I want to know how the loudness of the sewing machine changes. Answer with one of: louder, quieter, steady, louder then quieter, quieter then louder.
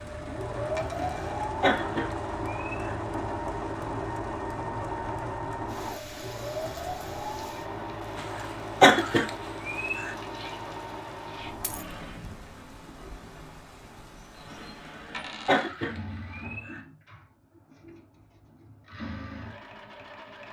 quieter.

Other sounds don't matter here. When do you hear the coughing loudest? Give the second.
9 s.